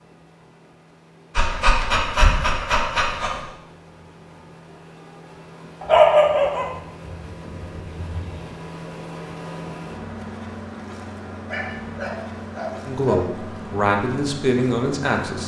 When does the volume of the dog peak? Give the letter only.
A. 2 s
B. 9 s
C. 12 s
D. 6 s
D.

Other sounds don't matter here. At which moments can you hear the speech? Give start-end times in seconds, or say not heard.
12.8-15.4.